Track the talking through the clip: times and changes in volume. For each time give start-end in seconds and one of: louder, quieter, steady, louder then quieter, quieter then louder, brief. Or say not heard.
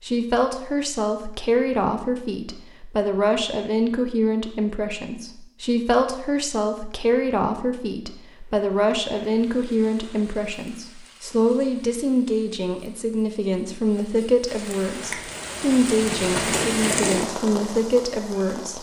0.0-18.7 steady.